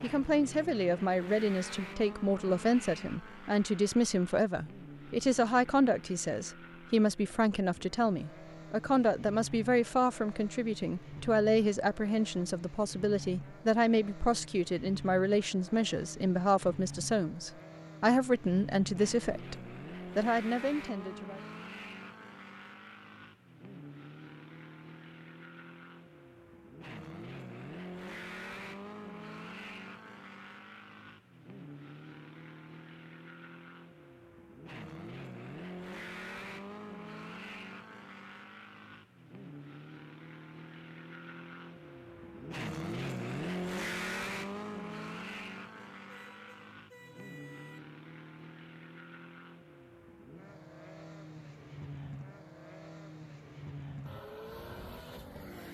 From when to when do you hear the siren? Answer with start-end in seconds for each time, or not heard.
not heard.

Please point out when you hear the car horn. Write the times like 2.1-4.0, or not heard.
46.0-47.8.